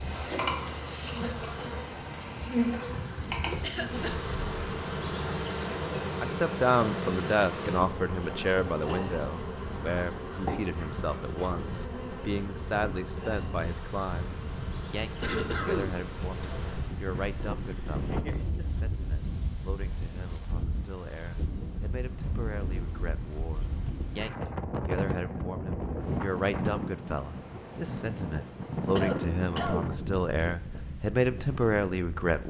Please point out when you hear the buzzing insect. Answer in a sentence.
The buzzing insect can be heard from 0.0 to 16.9 s.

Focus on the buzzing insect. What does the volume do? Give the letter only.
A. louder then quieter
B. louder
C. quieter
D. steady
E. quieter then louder
C.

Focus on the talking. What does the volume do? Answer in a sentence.
The volume of the talking goes down, then up.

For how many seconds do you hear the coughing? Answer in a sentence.
The coughing can be heard for 3 seconds in total.